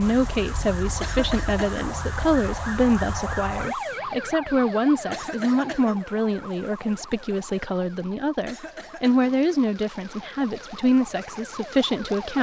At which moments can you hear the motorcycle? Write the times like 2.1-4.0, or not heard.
not heard.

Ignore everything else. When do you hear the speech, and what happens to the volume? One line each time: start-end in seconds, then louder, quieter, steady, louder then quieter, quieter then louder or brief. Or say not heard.
0.0-12.3 steady.